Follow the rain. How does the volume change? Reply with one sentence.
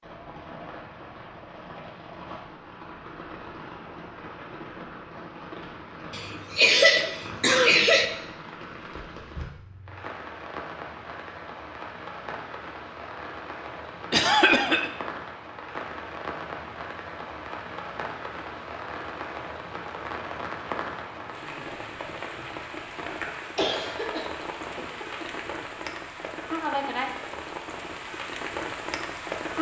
The loudness of the rain goes up.